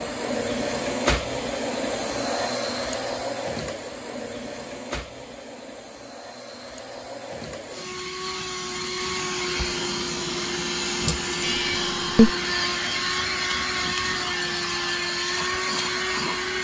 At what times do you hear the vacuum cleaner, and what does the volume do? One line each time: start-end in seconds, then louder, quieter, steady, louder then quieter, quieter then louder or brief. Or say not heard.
0.0-16.5 quieter then louder.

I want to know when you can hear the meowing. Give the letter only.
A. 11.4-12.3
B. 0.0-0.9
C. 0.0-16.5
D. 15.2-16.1
A.